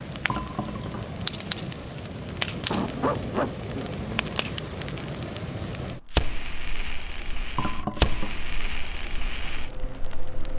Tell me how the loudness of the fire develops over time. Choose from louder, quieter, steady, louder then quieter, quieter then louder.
quieter.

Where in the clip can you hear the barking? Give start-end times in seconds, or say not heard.
2.7-4.3.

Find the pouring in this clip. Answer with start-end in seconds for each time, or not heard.
0.2-1.1, 7.5-8.6.